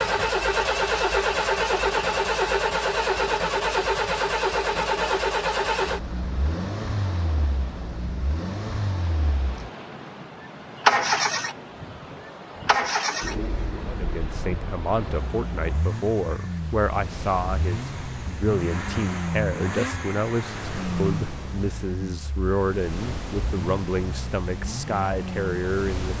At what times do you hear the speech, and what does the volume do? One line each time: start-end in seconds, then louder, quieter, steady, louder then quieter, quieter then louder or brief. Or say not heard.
13.8-26.1 steady.